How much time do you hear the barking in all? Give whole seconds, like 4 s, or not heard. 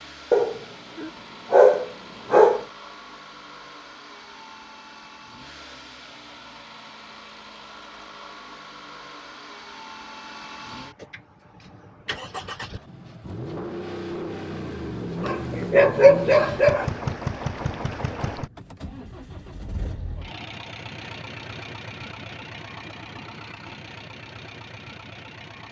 4 s.